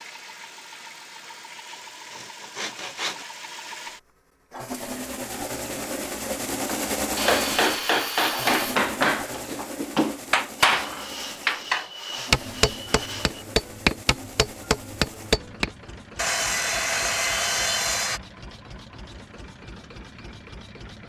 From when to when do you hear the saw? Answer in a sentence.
The saw can be heard from 1.2 to 3.2 s, from 7.2 to 8.8 s, from 10.8 to 13.4 s and from 16.1 to 18.2 s.